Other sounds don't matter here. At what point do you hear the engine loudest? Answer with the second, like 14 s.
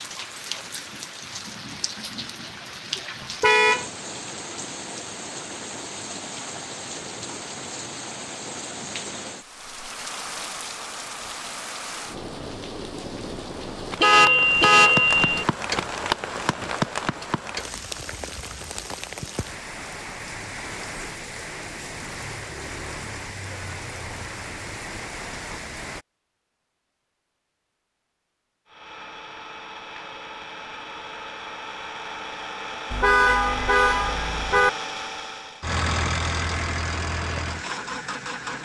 36 s.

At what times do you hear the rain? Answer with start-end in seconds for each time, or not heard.
0.0-26.1.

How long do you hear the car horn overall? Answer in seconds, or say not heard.
4 s.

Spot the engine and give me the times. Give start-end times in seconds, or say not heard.
28.6-38.5.